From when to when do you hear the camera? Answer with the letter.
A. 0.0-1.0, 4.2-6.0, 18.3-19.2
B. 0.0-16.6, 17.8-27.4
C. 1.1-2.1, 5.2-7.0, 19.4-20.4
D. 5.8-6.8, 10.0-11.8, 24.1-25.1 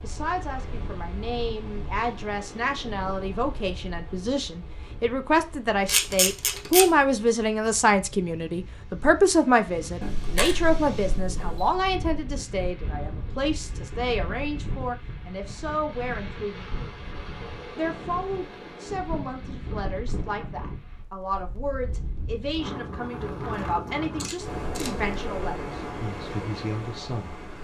D.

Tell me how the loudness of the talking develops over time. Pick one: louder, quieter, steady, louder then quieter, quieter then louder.
louder then quieter.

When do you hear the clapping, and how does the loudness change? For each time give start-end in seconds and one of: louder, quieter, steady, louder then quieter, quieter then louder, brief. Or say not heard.
not heard.